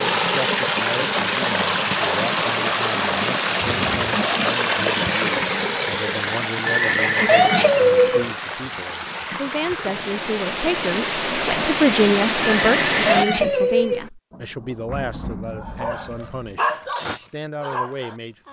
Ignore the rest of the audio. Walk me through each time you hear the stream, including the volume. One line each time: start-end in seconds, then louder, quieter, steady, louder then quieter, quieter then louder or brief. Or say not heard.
0.0-13.2 quieter then louder.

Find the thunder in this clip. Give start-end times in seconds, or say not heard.
14.3-16.6.